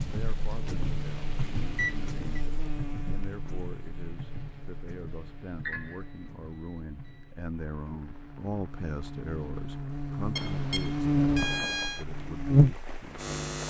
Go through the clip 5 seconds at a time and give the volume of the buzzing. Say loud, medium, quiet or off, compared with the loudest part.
quiet, quiet, loud.